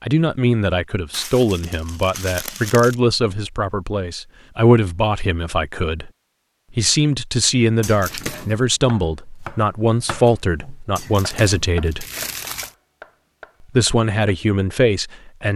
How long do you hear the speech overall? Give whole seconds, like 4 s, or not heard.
13 s.